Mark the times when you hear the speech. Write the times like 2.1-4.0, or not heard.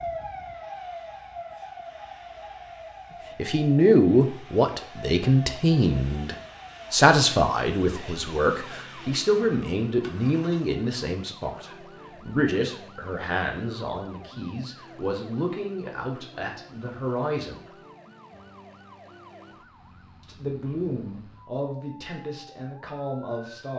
3.4-17.8, 20.2-23.7.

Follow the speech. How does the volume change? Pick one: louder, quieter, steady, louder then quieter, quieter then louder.
quieter.